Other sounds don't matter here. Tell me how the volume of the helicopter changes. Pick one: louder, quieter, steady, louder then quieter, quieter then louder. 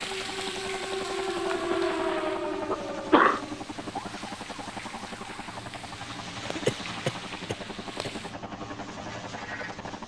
steady.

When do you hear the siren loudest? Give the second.
2 s.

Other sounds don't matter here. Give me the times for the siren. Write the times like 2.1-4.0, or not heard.
0.0-5.6.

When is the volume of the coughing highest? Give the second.
3 s.